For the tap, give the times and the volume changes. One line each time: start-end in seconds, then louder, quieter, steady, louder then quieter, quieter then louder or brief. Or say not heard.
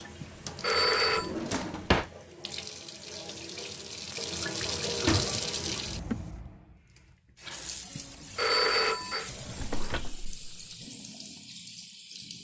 0.0-12.3 louder then quieter.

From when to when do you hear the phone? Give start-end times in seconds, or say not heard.
0.2-1.3, 8.0-9.3.